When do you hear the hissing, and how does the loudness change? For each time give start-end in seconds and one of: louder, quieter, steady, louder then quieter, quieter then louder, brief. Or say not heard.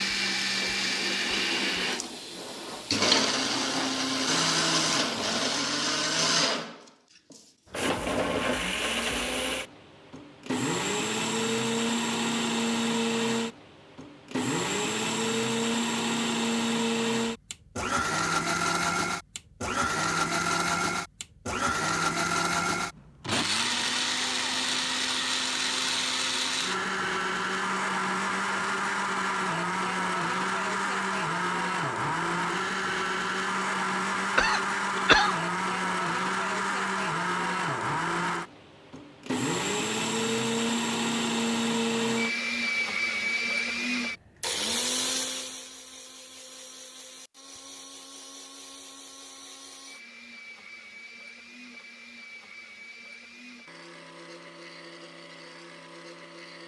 0.0-5.5 louder then quieter.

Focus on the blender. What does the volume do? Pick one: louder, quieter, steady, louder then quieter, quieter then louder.
quieter.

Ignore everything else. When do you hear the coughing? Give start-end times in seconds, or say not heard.
34.4-35.4.